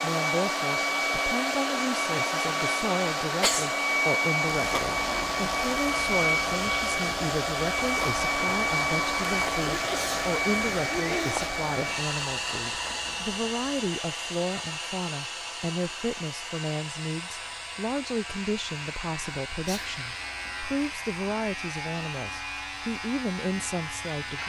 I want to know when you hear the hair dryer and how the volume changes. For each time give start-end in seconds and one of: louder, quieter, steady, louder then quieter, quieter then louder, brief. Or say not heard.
0.0-24.4 quieter.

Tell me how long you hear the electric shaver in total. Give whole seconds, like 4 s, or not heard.
20 s.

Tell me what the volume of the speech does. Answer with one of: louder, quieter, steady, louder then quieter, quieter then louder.
steady.